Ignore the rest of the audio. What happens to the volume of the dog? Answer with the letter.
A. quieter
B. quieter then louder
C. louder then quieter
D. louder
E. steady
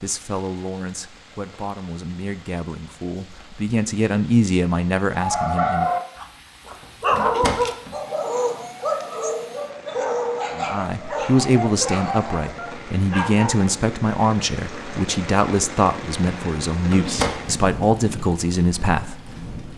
A.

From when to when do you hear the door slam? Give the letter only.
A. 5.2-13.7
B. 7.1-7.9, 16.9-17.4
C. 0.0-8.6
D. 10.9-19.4
B.